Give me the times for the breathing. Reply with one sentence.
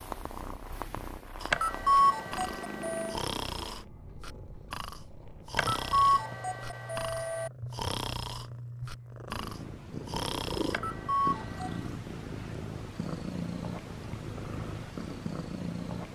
The breathing can be heard from 1.4 to 10.8 s.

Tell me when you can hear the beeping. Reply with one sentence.
You can hear the beeping from 1.5 to 3.2 s, from 5.5 to 7.5 s and from 10.7 to 11.9 s.